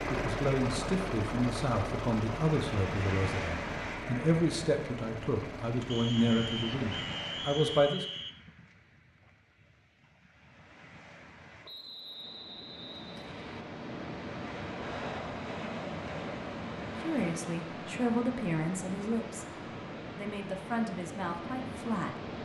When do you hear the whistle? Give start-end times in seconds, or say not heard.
5.9-8.3, 11.7-13.7.